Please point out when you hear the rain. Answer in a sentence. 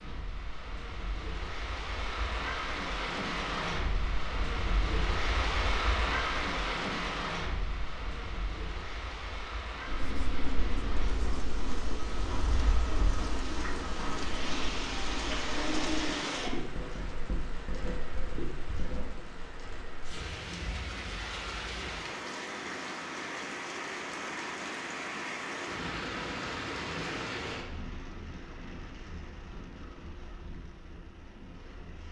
The rain can be heard from 0.0 to 32.0 s.